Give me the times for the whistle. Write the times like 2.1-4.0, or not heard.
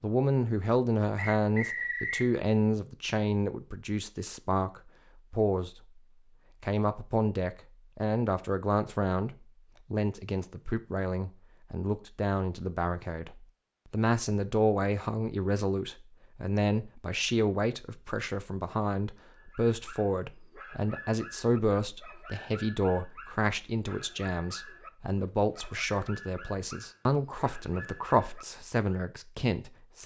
1.1-2.3.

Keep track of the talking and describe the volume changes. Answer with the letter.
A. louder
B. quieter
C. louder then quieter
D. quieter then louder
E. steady
E.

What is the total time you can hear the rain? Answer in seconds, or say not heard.
not heard.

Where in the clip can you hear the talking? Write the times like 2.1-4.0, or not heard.
0.0-6.0, 6.6-30.0.